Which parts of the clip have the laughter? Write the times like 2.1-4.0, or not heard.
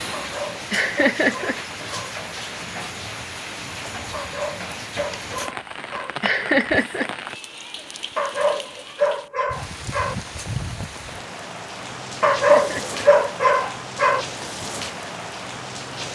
0.7-1.6, 6.2-7.1, 12.3-13.0.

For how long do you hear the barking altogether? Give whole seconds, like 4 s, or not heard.
8 s.